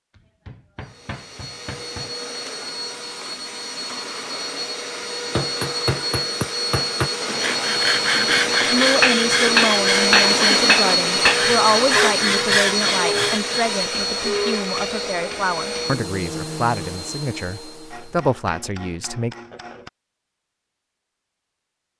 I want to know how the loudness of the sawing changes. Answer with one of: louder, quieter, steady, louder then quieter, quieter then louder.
steady.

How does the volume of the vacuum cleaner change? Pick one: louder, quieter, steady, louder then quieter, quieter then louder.
louder then quieter.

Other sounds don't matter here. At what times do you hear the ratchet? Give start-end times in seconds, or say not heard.
not heard.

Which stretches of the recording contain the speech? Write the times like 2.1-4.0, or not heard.
8.7-19.4.